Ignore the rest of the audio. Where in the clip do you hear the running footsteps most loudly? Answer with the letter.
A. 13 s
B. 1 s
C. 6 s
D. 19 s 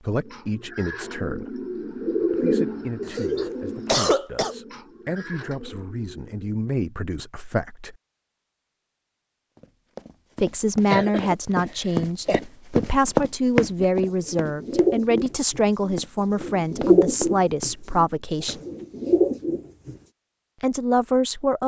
A.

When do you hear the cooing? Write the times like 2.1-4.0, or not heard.
0.2-6.5, 13.8-19.9.